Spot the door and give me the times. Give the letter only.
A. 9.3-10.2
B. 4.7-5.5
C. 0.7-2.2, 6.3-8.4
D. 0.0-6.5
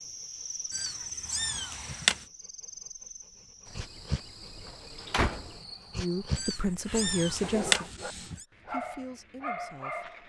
B.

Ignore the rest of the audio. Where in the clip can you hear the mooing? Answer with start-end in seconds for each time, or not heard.
not heard.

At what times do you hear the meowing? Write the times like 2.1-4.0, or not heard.
0.7-2.2, 6.3-8.4.